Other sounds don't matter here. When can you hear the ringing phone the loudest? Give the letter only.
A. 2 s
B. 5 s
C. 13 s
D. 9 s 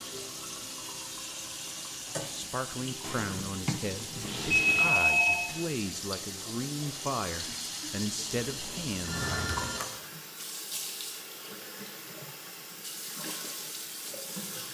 B.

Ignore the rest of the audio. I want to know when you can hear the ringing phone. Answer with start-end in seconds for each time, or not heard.
4.7-5.5, 8.4-9.8.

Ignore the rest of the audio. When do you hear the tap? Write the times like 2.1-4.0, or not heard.
0.0-14.7.